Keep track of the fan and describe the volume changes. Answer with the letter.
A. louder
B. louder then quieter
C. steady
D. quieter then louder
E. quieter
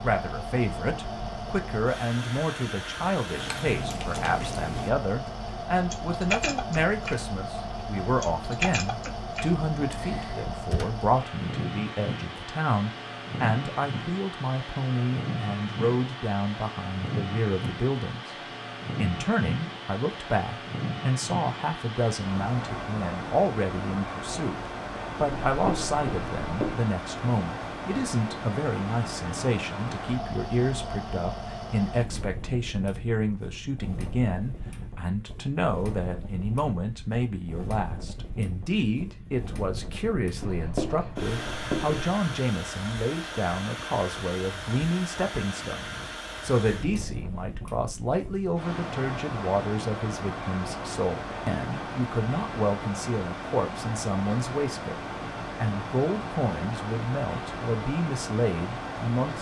C.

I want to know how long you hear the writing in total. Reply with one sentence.
The writing can be heard for 3 seconds in total.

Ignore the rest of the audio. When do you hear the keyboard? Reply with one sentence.
You can hear the keyboard from 3.2 to 5.3 s, from 5.9 to 7.6 s and from 8.2 to 11.1 s.